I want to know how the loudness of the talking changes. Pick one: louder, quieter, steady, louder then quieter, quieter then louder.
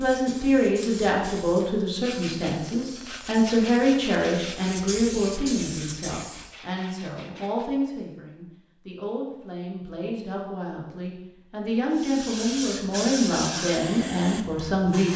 quieter then louder.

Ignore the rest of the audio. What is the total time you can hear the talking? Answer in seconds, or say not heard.
15 s.